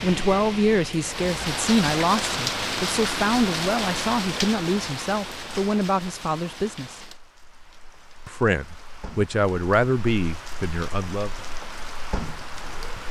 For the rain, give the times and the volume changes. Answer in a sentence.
You can hear the rain from 0.0 to 13.0 s, getting quieter then louder.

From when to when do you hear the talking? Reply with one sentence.
The talking can be heard from 0.0 to 7.0 s and from 8.2 to 11.3 s.